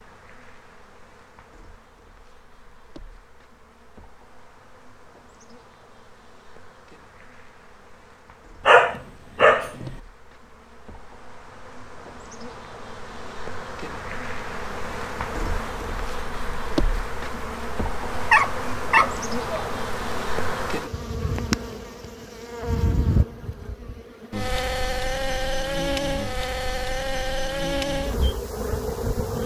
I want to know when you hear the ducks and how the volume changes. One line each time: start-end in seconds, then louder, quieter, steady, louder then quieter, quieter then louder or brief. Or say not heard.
not heard.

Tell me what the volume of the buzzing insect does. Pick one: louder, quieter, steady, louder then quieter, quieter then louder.
louder.